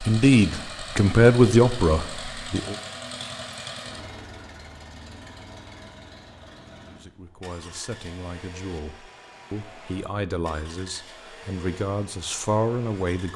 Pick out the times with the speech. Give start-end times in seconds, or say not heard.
0.0-2.8, 6.8-13.3.